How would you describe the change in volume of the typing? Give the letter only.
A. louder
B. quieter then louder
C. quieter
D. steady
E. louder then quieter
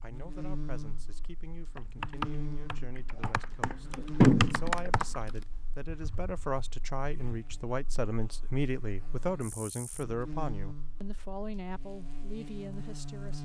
E.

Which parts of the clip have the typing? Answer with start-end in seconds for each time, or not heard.
1.8-7.7.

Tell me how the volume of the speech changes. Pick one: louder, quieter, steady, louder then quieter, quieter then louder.
louder then quieter.